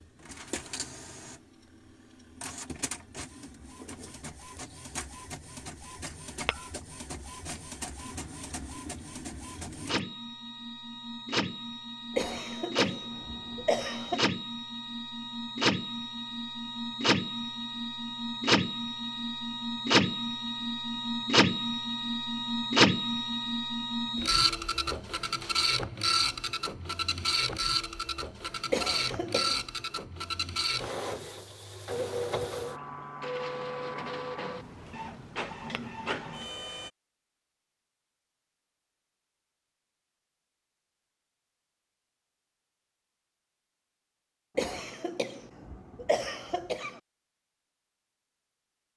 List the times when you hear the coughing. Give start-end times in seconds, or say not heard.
12.2-14.2, 28.7-29.6, 44.5-47.0.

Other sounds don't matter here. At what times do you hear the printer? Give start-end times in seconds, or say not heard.
0.0-36.9.